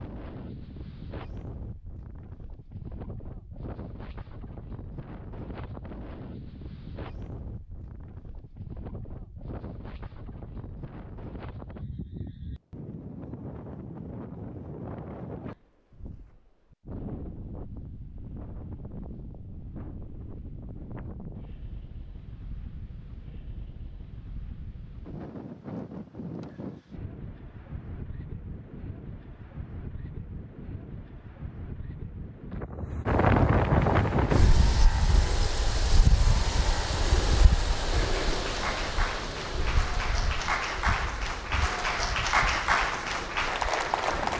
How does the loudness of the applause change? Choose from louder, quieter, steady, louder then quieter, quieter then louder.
louder.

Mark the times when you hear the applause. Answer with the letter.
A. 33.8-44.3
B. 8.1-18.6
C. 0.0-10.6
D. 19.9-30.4
A.